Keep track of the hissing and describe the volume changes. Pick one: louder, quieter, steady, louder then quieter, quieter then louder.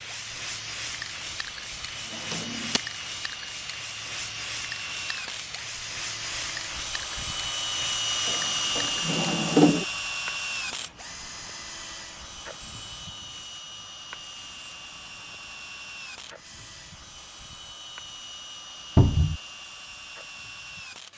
quieter.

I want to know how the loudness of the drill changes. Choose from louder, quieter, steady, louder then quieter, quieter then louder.
louder then quieter.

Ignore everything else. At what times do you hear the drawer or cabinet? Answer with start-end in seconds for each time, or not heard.
2.1-2.8, 8.2-9.8, 18.9-19.4.